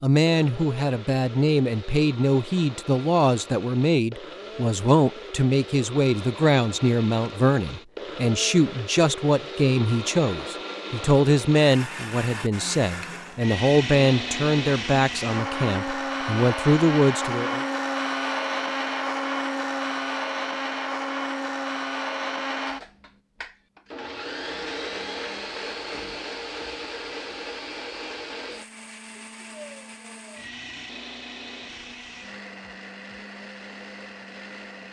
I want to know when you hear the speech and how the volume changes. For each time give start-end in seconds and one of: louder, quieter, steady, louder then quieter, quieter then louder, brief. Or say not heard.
0.0-17.6 steady.